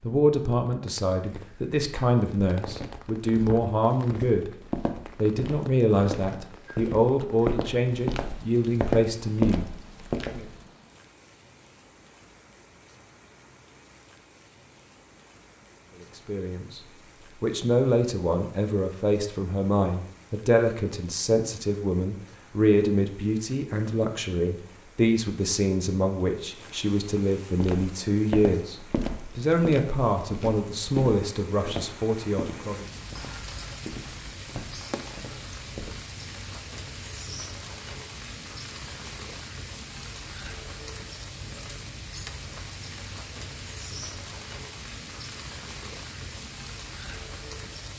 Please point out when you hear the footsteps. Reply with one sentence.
You can hear the footsteps from 2.5 to 10.6 s and from 27.6 to 36.0 s.